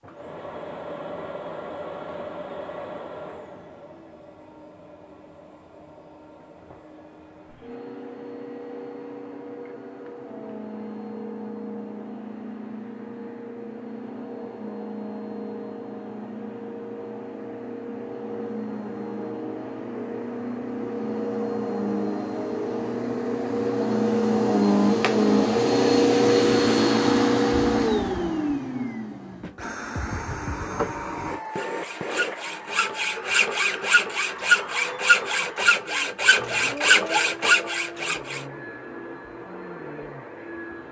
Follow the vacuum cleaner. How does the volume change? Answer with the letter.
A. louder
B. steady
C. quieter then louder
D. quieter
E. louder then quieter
E.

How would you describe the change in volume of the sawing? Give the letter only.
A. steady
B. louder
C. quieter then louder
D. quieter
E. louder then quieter
B.